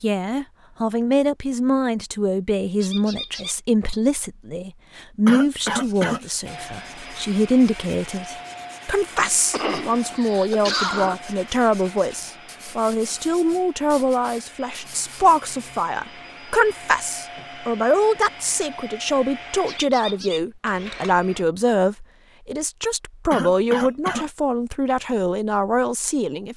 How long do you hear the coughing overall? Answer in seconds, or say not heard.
4 s.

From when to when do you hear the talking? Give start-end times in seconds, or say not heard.
0.0-26.5.